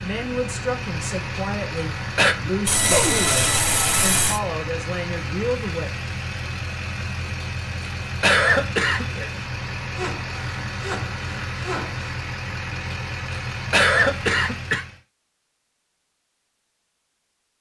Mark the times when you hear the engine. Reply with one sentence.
You can hear the engine from 0.0 to 15.0 s.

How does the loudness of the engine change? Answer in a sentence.
The volume of the engine stays about the same.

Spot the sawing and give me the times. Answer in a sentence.
The sawing can be heard from 2.6 to 4.4 s and from 9.9 to 12.1 s.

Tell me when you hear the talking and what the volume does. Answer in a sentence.
The talking can be heard from 0.0 to 5.9 s, at a steady volume.